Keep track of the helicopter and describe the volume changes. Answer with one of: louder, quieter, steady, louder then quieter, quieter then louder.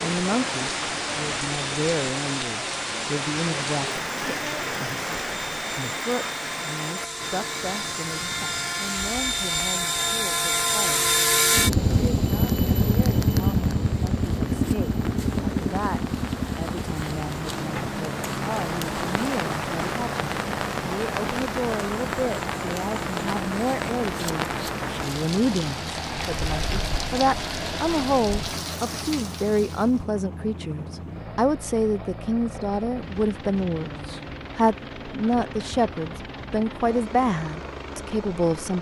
quieter.